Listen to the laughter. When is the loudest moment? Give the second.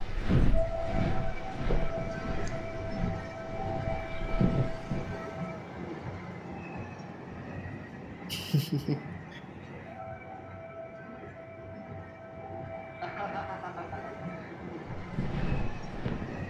9 s.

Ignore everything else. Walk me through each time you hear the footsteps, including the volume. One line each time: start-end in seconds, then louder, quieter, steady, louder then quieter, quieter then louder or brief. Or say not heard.
0.0-5.2 quieter then louder
14.9-16.4 brief.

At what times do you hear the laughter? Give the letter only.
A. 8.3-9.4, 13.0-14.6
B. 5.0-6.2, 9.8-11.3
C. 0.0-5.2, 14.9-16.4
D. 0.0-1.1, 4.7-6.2
A.